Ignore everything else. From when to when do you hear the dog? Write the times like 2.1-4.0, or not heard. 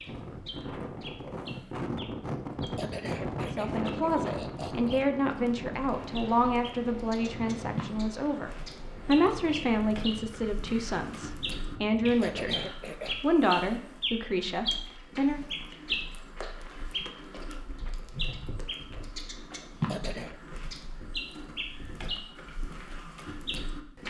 not heard.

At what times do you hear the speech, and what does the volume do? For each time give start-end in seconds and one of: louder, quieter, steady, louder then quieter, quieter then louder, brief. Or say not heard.
3.5-15.4 steady.